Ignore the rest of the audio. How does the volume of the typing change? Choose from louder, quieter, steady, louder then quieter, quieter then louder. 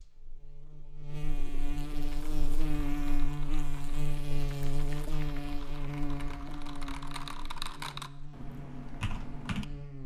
louder.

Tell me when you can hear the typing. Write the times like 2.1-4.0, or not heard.
2.0-9.7.